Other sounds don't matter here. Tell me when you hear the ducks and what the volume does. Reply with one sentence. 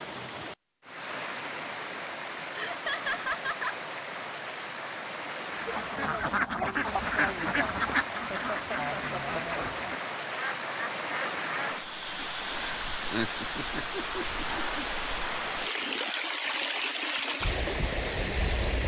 You can hear the ducks from 5.5 to 11.8 s, getting quieter.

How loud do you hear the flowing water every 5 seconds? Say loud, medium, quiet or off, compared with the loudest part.
medium, medium, loud, loud.